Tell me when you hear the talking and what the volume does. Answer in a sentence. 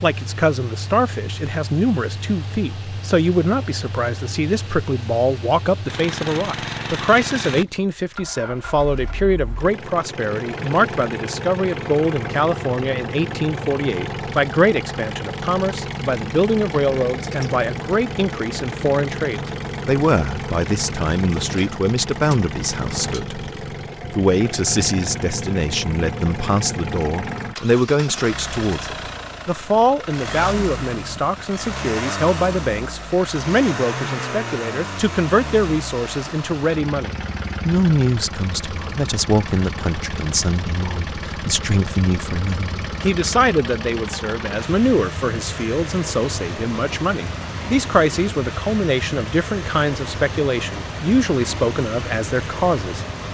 You can hear the talking from 0.0 to 23.4 s, at a steady volume; and from 24.1 to 53.0 s, at a steady volume.